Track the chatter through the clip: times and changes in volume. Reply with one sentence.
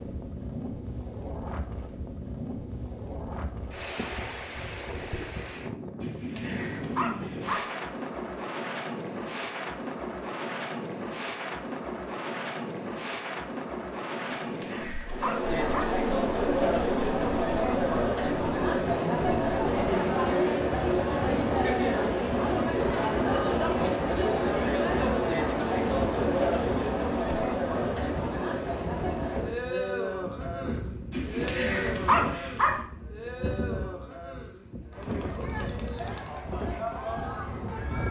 You can hear the chatter from 15.1 to 38.0 s, getting quieter.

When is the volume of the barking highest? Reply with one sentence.
The loudest moment of the barking is at 32 seconds.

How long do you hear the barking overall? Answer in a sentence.
You can hear the barking for 5 seconds altogether.